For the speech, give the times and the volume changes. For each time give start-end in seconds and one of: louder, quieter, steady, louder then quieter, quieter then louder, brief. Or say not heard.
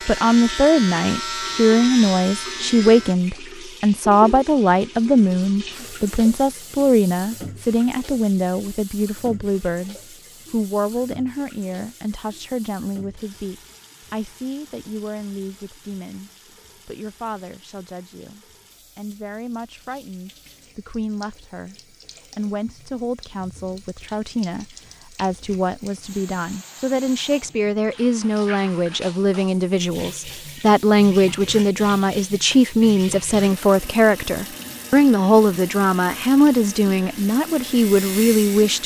0.1-38.8 quieter then louder.